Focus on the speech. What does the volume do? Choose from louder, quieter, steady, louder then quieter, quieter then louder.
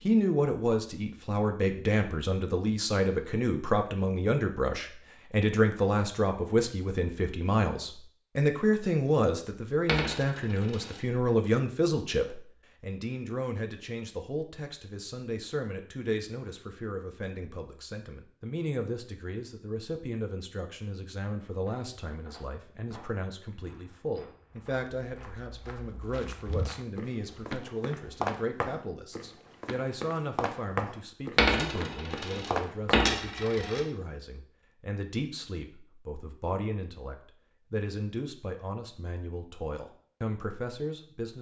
quieter.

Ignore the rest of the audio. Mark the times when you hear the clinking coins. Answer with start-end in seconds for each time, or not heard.
9.8-11.0, 31.4-33.8.